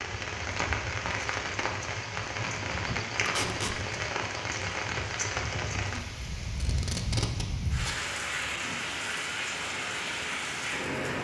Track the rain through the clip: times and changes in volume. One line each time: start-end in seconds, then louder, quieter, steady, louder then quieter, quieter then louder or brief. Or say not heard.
0.0-11.1 steady.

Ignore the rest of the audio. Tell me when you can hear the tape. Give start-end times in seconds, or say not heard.
3.2-3.8, 6.6-8.0.